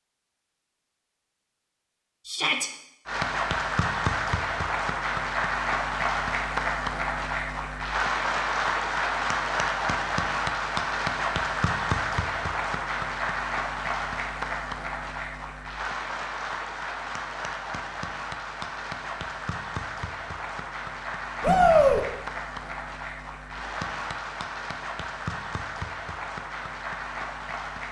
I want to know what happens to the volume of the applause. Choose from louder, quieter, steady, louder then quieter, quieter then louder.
quieter.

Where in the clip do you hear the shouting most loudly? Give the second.
22 s.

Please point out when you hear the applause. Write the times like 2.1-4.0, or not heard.
3.0-27.8.